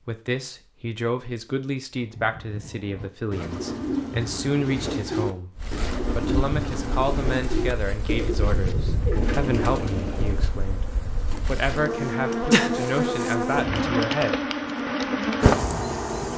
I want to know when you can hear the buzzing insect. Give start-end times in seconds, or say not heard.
5.5-16.3.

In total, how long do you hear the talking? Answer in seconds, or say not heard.
14 s.